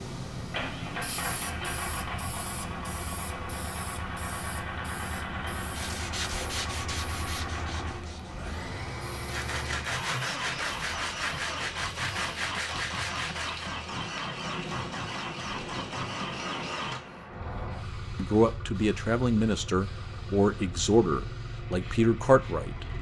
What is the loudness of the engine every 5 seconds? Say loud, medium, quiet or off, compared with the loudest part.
loud, loud, loud, loud, medium.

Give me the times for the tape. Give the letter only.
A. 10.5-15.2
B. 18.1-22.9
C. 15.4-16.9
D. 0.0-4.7
C.